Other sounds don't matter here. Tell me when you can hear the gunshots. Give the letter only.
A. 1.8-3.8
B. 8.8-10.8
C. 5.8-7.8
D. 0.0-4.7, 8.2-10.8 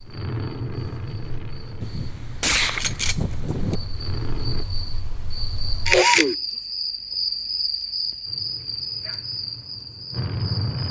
A.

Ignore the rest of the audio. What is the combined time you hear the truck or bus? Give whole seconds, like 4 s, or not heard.
7 s.